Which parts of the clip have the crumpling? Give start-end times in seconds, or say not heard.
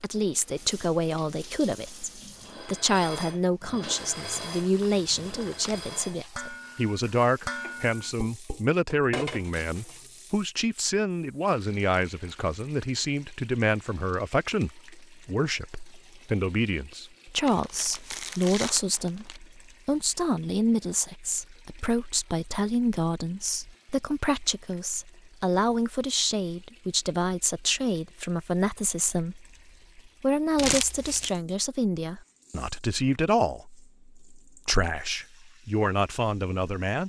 4.1-5.9, 17.4-19.4, 30.6-31.3.